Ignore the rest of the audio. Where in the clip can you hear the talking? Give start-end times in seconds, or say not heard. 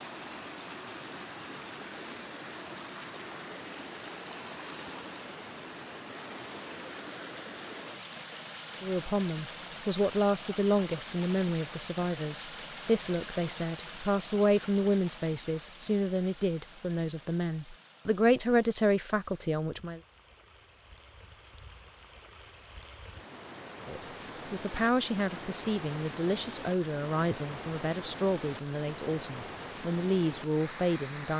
8.8-20.0, 23.9-31.3.